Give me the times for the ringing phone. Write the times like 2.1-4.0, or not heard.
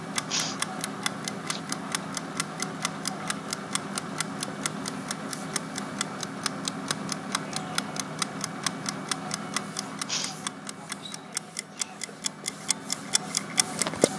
not heard.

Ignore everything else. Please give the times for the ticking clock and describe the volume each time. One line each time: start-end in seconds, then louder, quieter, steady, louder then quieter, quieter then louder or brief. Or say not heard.
0.0-14.1 steady.